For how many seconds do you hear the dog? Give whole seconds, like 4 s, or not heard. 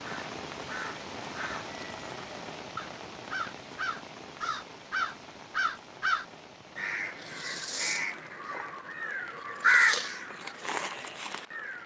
not heard.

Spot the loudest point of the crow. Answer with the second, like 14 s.
10 s.